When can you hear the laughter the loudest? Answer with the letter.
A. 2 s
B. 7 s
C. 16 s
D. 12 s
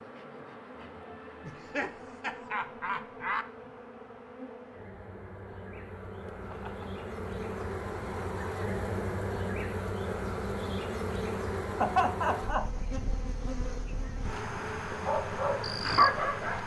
D.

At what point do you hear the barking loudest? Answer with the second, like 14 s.
16 s.